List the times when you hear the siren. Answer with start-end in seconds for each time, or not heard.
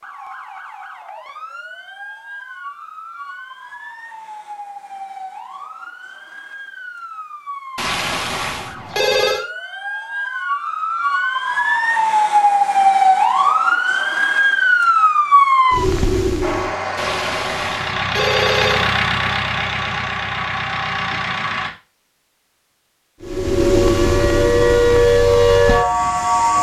0.0-16.8, 23.2-26.5.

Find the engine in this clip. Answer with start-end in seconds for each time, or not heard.
16.4-21.7.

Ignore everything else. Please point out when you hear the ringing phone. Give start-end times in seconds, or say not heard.
7.8-9.4, 16.9-18.9.